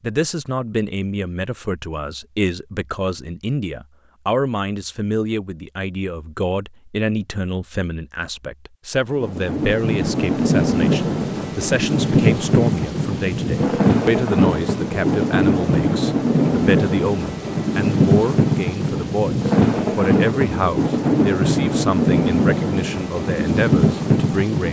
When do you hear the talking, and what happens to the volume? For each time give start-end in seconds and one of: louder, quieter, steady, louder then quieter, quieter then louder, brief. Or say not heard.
0.0-24.6 steady.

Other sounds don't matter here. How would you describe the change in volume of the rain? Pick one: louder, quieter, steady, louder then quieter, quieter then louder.
steady.